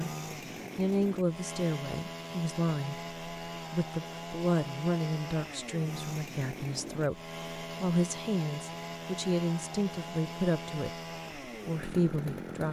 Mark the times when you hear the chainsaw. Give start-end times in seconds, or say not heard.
0.0-12.6.